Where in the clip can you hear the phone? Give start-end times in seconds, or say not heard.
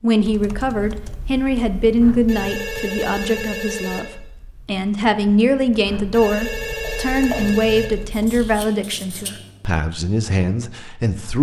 2.0-4.0, 5.8-7.8.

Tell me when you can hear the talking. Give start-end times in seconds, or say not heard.
0.0-11.3.